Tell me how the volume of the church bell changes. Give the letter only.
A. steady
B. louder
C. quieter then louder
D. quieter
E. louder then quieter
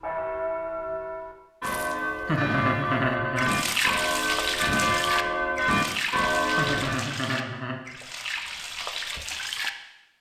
B.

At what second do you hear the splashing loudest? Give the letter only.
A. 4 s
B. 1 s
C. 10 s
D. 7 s
A.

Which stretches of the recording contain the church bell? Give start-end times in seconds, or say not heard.
0.0-7.0.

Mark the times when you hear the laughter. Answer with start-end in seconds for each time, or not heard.
2.2-3.5, 6.5-7.8.